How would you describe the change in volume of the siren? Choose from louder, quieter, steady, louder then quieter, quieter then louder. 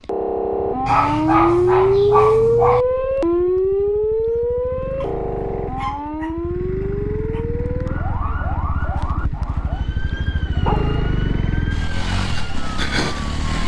quieter.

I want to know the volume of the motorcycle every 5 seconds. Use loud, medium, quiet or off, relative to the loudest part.
quiet, medium, loud.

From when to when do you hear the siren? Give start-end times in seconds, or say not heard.
0.0-13.6.